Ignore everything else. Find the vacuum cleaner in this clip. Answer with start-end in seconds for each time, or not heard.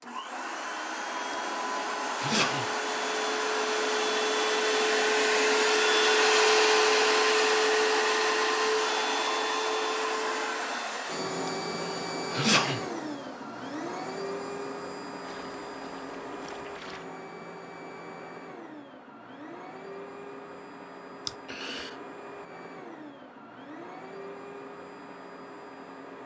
0.0-26.2.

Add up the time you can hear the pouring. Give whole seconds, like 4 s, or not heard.
2 s.